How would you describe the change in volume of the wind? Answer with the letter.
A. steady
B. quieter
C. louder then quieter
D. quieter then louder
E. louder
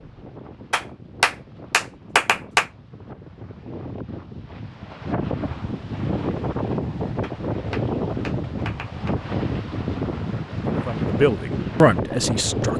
E.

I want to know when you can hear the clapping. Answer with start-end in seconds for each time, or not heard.
0.7-2.7, 7.2-9.2.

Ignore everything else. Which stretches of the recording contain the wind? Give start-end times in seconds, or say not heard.
0.0-12.7.